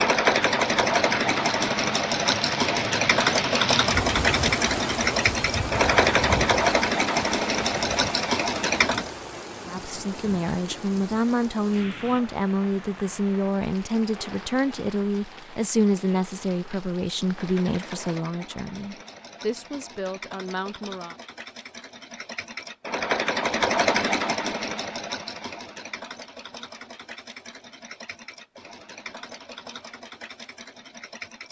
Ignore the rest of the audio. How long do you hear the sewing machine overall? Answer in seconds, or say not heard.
23 s.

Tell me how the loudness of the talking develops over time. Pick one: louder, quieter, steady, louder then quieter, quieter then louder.
quieter.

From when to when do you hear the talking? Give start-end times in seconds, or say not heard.
9.7-21.1.